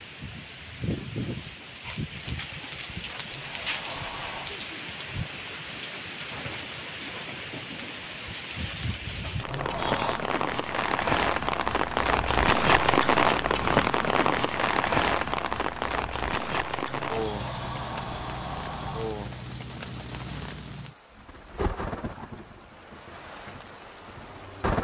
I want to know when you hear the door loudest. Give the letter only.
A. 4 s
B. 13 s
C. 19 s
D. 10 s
D.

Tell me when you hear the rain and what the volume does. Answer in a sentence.
You can hear the rain from 0.0 to 24.7 s, getting louder then quieter.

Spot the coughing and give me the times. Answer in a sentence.
The coughing can't be heard in this clip.